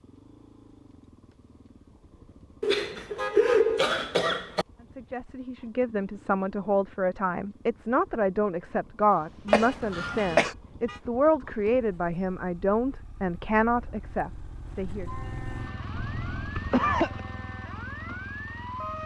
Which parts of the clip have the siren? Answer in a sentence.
The siren can be heard from 15.1 to 19.0 s.